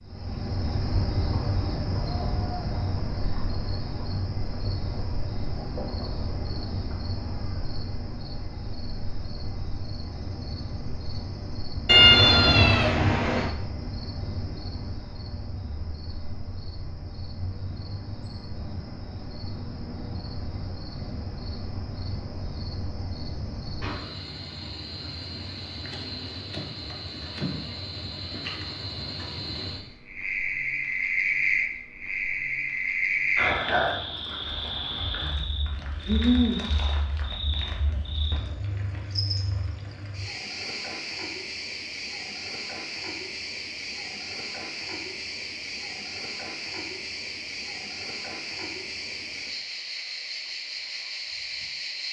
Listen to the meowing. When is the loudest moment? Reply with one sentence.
The loudest moment of the meowing is at 12 seconds.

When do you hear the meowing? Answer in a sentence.
The meowing can be heard from 11.8 to 13.5 s.